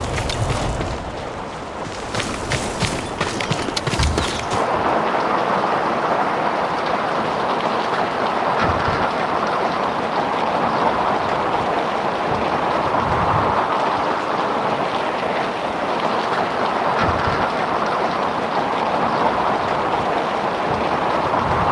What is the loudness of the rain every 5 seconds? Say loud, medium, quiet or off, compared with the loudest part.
medium, loud, loud, loud, loud.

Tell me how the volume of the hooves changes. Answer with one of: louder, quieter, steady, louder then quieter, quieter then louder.
quieter then louder.